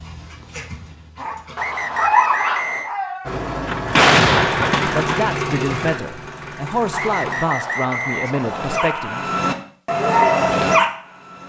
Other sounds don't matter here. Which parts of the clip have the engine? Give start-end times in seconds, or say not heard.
3.2-7.5.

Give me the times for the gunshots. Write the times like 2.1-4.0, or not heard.
3.6-5.2.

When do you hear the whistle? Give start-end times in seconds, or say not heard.
1.6-3.0, 6.9-8.8.